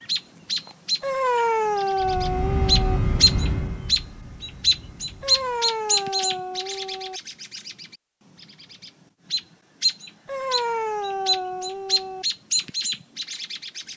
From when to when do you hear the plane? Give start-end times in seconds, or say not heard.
1.9-5.7.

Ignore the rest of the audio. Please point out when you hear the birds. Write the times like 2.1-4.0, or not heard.
0.1-13.9.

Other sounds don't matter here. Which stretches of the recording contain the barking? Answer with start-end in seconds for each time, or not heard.
1.0-3.0, 5.2-7.2, 10.2-12.2.